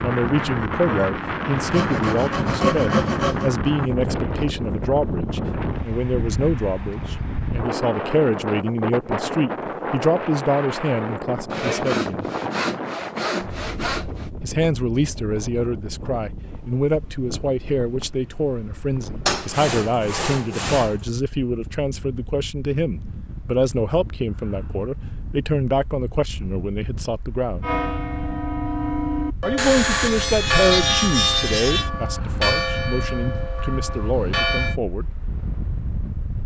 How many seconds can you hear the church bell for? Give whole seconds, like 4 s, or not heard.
7 s.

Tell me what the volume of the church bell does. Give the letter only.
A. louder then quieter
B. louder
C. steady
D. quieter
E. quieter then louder
D.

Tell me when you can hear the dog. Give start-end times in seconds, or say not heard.
not heard.